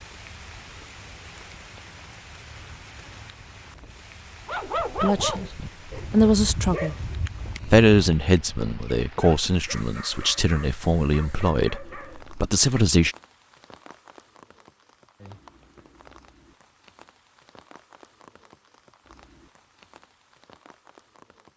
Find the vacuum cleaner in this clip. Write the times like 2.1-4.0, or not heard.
not heard.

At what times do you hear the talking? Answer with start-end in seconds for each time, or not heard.
5.0-7.0, 7.7-13.2.